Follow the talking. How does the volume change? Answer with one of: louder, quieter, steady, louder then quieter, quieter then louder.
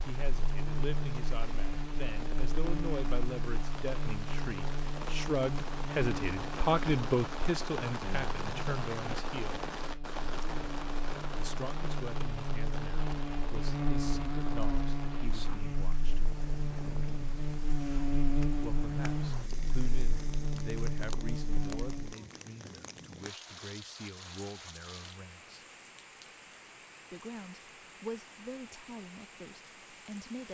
louder then quieter.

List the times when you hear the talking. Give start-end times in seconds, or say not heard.
0.0-9.6, 11.3-16.2, 18.6-25.6, 27.1-30.4.